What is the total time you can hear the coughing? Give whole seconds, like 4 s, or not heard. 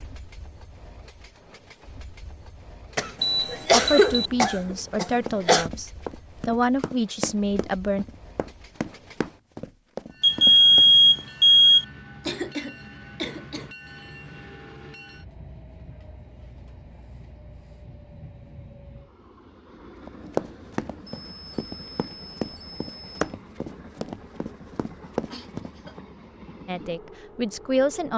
5 s.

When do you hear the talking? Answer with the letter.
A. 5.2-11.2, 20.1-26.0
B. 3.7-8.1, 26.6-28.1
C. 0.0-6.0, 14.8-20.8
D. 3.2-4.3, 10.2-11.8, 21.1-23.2
B.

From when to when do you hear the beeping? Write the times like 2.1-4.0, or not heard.
3.2-4.3, 10.2-11.8, 21.1-23.2.